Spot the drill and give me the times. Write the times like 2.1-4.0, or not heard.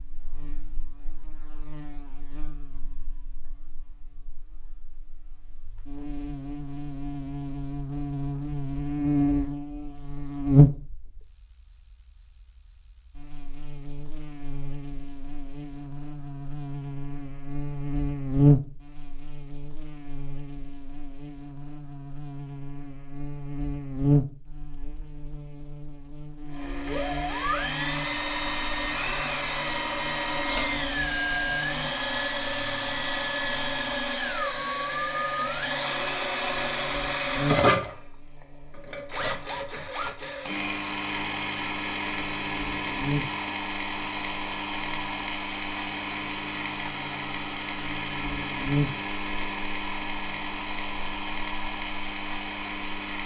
26.5-53.2.